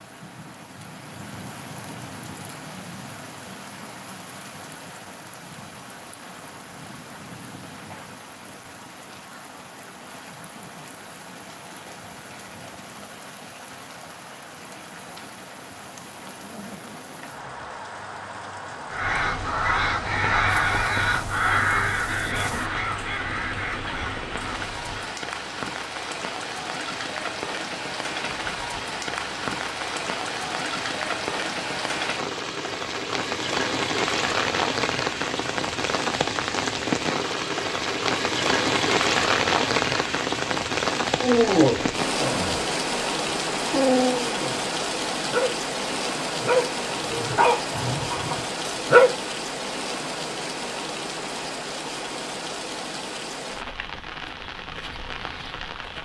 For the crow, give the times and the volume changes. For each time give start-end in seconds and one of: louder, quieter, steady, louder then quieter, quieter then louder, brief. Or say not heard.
18.9-25.1 quieter.